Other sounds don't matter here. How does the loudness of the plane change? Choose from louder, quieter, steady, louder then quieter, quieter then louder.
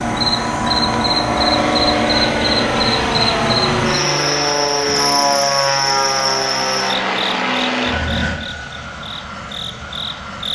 quieter.